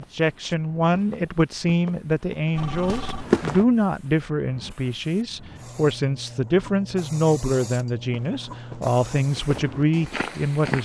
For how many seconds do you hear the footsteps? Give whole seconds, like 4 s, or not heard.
6 s.